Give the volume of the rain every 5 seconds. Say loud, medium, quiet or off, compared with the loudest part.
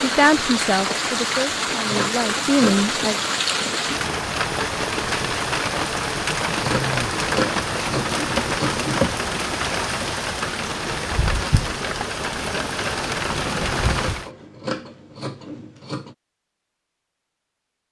loud, loud, loud, off.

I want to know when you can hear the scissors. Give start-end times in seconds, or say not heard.
1.9-3.0, 6.6-9.2, 13.8-16.1.